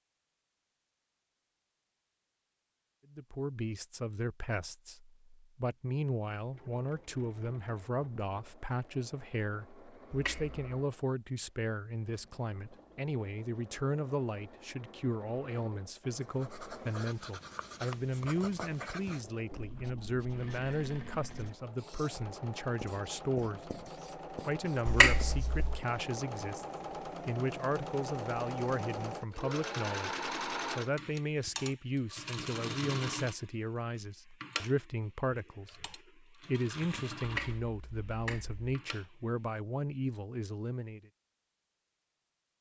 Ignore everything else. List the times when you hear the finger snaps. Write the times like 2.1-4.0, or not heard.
10.1-10.6, 24.9-25.8, 37.2-38.8.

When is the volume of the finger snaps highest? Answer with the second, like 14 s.
25 s.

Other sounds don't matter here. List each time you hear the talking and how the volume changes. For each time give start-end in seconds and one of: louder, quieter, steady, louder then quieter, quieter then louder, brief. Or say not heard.
3.1-41.0 steady.